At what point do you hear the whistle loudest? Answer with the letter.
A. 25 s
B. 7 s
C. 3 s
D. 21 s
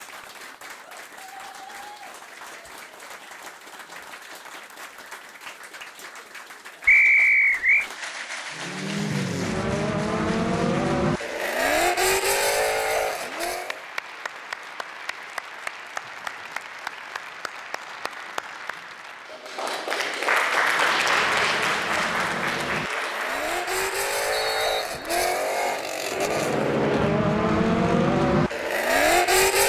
B.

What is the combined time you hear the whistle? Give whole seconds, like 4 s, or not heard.
2 s.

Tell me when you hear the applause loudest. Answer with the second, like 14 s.
21 s.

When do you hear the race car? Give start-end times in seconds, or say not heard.
8.5-13.8, 20.4-29.6.